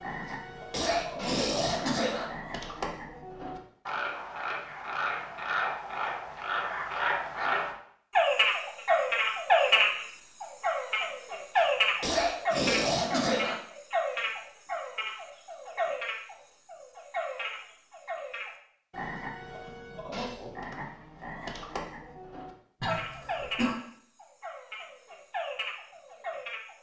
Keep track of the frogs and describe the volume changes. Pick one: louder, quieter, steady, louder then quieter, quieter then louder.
louder then quieter.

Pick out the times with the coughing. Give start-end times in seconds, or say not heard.
0.2-2.2, 11.6-13.6, 22.8-23.8.